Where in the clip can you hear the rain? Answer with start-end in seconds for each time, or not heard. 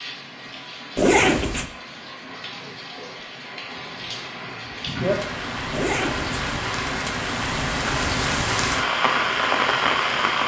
0.0-10.4.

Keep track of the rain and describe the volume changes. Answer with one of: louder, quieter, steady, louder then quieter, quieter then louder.
louder.